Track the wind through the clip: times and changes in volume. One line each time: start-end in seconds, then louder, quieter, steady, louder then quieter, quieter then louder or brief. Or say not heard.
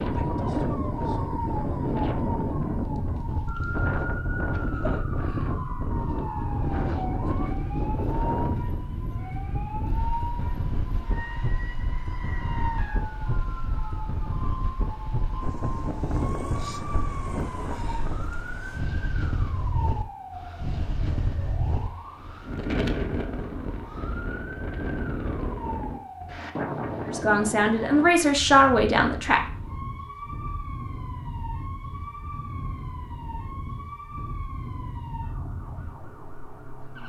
0.0-37.0 quieter.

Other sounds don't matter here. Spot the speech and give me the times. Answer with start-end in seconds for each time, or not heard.
27.1-29.4.